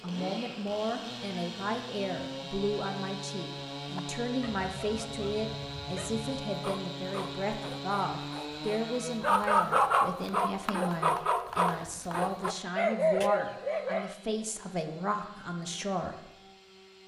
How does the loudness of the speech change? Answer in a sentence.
The volume of the speech stays about the same.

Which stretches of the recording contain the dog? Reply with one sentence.
You can hear the dog from 4.0 to 14.2 s.